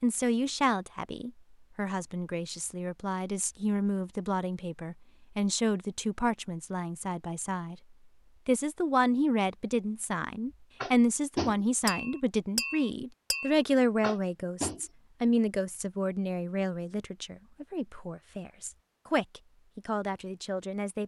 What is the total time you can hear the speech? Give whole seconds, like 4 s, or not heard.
20 s.